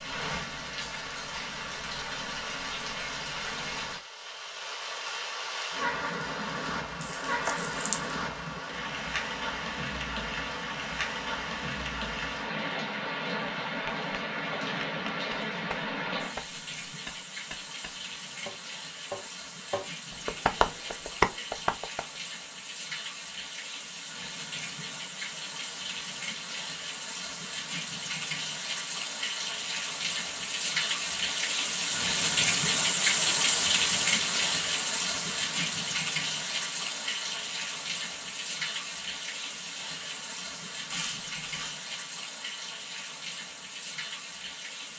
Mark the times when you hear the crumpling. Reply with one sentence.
You can hear the crumpling from 7.0 to 8.0 s and from 40.9 to 41.8 s.